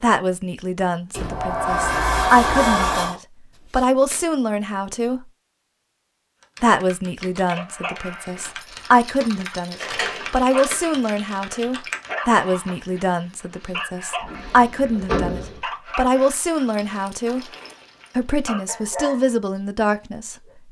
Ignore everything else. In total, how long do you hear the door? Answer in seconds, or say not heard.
5 s.